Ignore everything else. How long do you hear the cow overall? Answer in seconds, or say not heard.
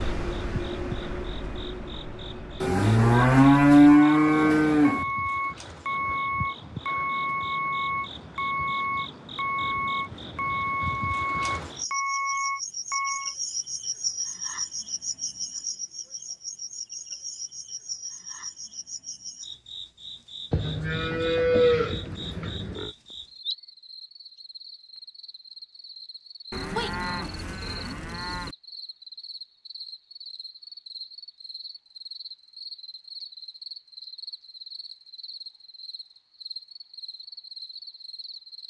7 s.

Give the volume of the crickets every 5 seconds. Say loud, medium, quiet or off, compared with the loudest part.
medium, medium, loud, loud, medium, medium, medium, medium.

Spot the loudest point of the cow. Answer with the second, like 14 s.
4 s.